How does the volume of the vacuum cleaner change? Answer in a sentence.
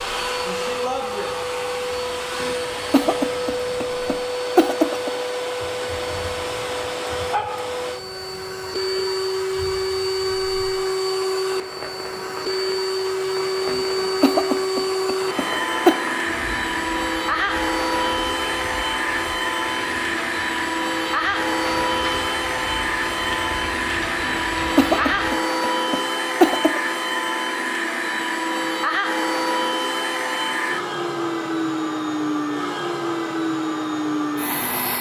The volume of the vacuum cleaner stays about the same.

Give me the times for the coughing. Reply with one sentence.
You can hear the coughing from 2.4 to 5.1 s, from 13.7 to 15.9 s and from 24.2 to 26.8 s.